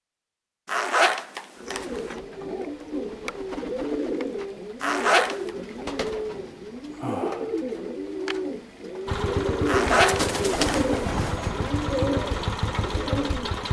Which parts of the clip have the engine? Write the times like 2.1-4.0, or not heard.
9.1-13.6.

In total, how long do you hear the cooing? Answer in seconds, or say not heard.
12 s.